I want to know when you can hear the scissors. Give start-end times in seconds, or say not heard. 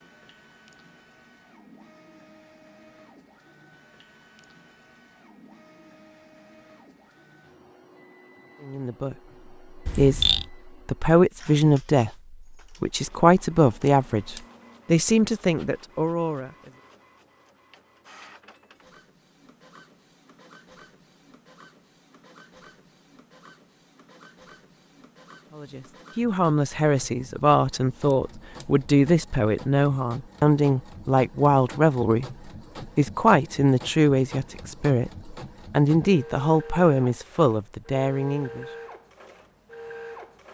9.8-10.5, 13.7-14.4, 28.0-28.7.